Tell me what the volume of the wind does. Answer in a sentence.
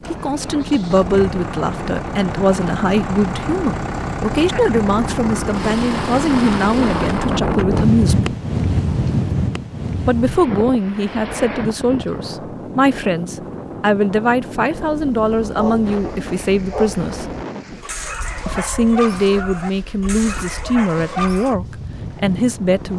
The loudness of the wind goes up, then down.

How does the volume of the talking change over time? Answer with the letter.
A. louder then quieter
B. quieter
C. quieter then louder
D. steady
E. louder
D.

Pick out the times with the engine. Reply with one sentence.
The engine can be heard from 0.0 to 7.4 s.